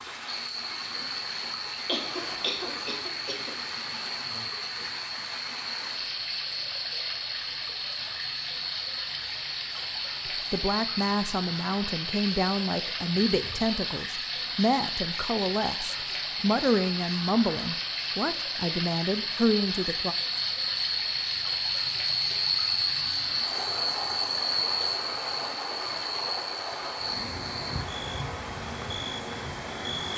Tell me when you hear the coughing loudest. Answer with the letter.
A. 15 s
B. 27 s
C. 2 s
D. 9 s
C.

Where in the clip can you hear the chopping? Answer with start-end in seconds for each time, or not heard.
not heard.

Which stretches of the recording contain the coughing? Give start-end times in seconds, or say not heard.
1.9-3.5.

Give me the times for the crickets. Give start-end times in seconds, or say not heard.
0.1-30.1.